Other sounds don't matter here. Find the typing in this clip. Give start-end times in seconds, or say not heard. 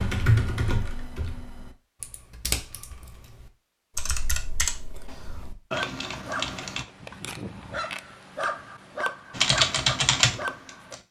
0.0-6.8, 9.3-11.0.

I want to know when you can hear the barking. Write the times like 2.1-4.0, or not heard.
5.7-11.0.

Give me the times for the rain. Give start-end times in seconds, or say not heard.
not heard.